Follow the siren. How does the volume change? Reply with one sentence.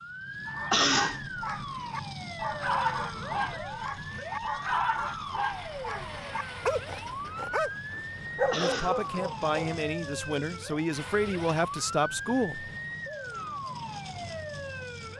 The volume of the siren stays about the same.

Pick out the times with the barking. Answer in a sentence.
You can hear the barking from 0.5 to 9.8 s.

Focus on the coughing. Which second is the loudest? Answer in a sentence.
The loudest moment of the coughing is at 1 second.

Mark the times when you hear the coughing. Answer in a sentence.
You can hear the coughing from 0.7 to 1.2 s and from 8.5 to 9.0 s.